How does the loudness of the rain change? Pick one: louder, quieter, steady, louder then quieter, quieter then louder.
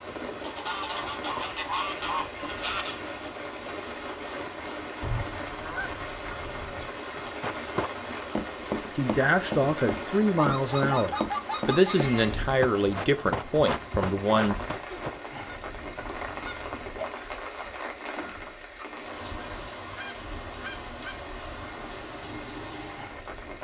steady.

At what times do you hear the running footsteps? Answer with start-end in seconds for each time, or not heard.
7.2-15.2.